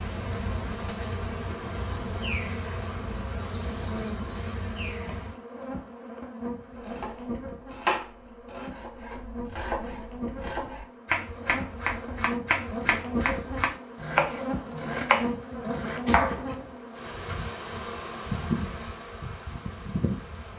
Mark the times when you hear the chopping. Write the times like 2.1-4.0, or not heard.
6.8-16.6.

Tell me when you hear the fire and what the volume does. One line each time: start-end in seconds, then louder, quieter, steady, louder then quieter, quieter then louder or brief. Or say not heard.
not heard.